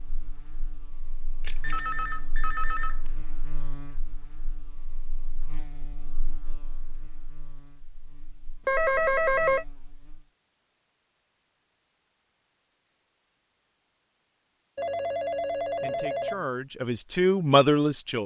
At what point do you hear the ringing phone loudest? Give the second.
9 s.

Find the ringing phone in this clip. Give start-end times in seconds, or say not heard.
1.4-3.1, 8.7-9.7, 14.8-16.4.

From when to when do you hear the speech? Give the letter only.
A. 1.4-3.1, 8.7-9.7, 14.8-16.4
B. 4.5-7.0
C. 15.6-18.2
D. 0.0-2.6
C.